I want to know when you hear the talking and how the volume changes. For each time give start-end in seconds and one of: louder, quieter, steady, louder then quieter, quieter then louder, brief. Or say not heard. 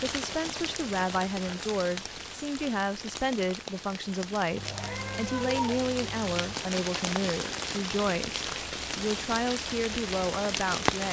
0.0-11.0 steady.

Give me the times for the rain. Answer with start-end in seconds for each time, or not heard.
0.0-11.0.